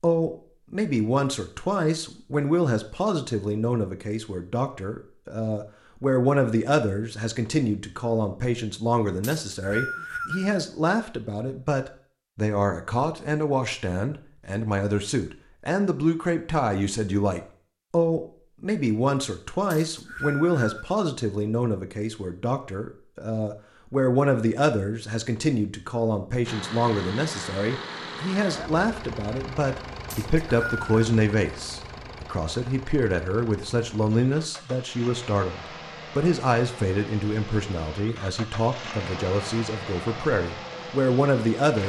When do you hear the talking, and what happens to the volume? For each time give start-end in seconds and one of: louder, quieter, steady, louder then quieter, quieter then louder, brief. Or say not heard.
0.0-41.8 steady.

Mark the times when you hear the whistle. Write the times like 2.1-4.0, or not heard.
9.2-10.5, 19.7-20.9, 30.1-30.9.